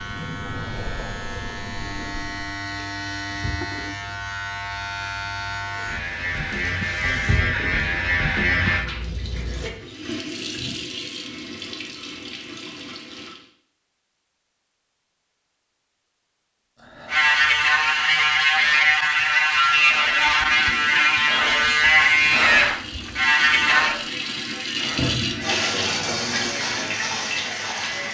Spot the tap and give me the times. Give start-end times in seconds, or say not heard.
0.0-13.5, 20.2-28.0.